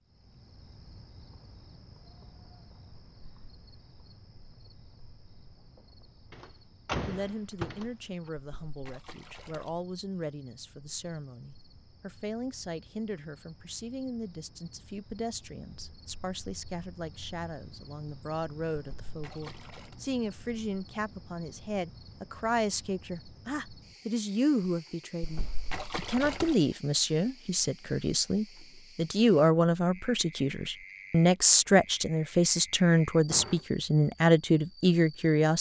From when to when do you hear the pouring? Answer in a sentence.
You can hear the pouring from 8.3 to 9.7 s, from 18.8 to 19.9 s and from 25.2 to 26.6 s.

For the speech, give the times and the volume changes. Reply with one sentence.
You can hear the speech from 7.0 to 35.5 s, getting louder.